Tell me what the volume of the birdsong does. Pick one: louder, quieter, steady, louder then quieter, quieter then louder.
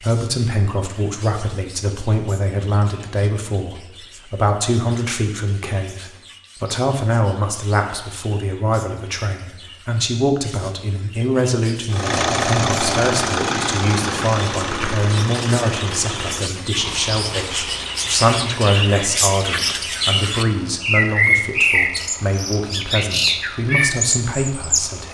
louder.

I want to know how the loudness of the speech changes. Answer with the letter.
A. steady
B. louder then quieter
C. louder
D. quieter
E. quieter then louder
A.